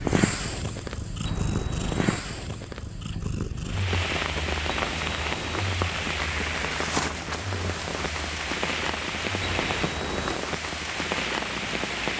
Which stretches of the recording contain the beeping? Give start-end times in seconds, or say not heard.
1.2-2.2, 4.7-5.7, 9.4-10.4.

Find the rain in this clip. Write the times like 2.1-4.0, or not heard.
3.6-12.1.